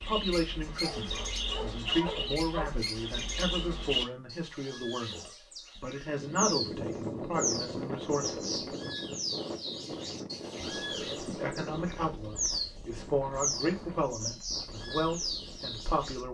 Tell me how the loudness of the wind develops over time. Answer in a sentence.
The loudness of the wind goes down.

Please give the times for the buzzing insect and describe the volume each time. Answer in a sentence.
The buzzing insect can't be heard in this clip.